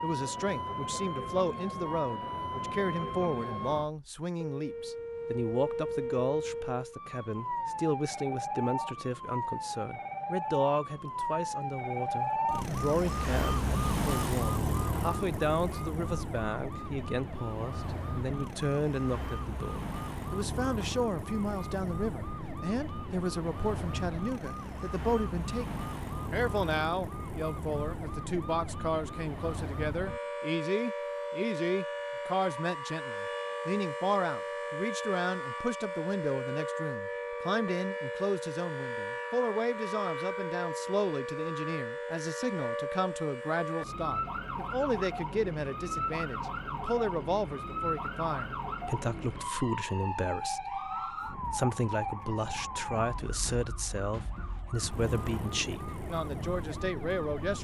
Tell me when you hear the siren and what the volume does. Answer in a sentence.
The siren can be heard from 0.0 to 57.5 s, at a steady volume.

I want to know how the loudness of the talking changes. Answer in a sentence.
The volume of the talking stays about the same.